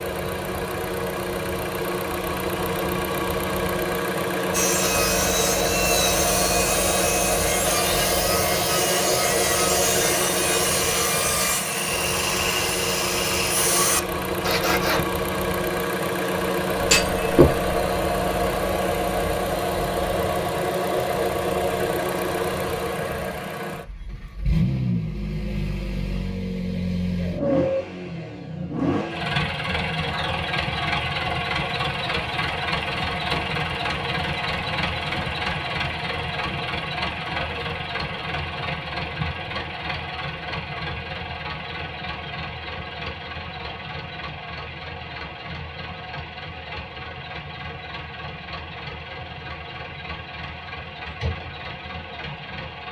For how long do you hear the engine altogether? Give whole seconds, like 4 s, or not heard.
53 s.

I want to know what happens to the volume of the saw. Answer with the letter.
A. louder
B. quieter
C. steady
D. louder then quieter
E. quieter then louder
C.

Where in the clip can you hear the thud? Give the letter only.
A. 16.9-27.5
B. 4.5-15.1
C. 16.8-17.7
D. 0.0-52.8
C.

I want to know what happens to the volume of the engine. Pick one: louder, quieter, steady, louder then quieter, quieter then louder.
quieter.